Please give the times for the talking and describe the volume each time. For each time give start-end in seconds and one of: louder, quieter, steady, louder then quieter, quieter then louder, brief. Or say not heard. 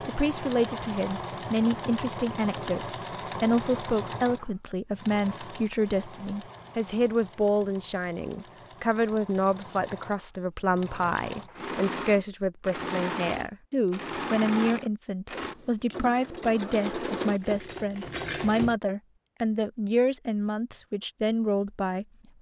0.1-22.3 steady.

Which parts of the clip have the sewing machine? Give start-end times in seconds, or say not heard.
0.0-18.8.